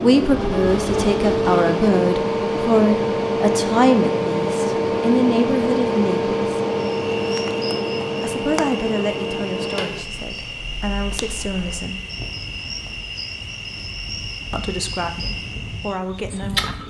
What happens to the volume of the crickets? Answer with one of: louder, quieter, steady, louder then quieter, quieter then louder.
steady.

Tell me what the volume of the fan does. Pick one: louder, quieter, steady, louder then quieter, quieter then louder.
quieter.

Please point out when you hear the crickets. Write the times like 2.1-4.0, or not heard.
6.7-16.8.